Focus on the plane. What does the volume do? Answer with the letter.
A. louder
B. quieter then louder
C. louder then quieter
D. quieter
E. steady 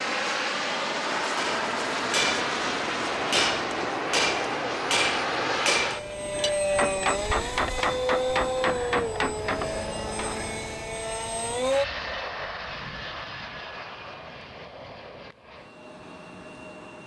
D.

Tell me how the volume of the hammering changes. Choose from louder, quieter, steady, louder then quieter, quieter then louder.
steady.